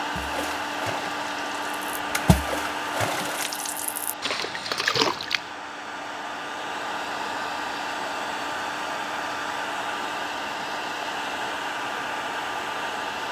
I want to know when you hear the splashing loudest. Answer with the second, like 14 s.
5 s.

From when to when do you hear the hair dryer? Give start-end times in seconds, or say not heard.
0.0-13.2.